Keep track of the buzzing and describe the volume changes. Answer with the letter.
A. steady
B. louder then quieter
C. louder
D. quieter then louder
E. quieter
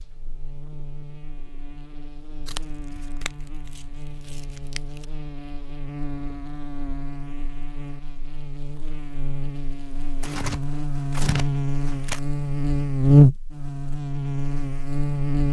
C.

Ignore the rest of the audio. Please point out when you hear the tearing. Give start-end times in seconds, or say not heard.
2.5-5.0, 10.2-12.2.